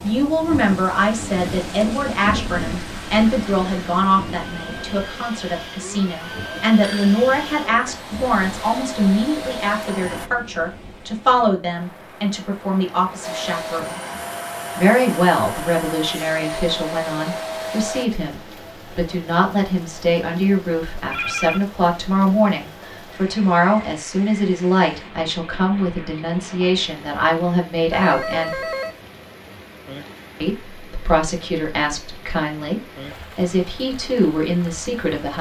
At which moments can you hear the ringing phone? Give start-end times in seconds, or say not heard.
6.2-7.2, 21.1-21.6, 27.9-29.0.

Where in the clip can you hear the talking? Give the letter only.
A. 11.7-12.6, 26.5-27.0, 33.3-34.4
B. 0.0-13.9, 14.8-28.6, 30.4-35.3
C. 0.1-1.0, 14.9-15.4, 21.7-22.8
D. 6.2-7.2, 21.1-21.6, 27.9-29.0
B.